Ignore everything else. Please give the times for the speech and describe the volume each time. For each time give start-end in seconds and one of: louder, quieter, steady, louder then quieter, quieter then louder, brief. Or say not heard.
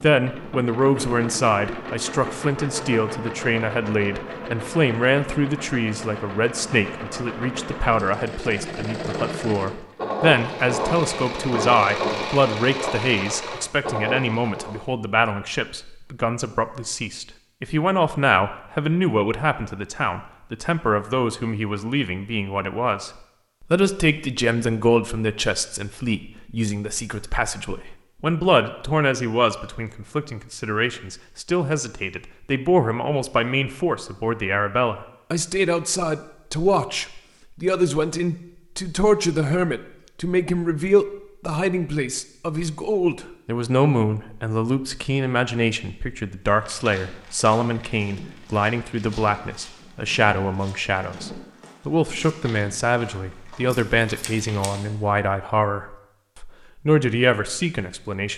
0.0-23.1 steady
23.7-58.3 steady.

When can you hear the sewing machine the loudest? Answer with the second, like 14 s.
12 s.